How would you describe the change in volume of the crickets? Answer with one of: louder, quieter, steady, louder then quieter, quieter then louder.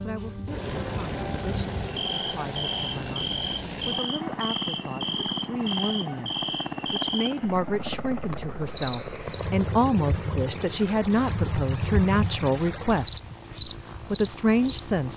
louder.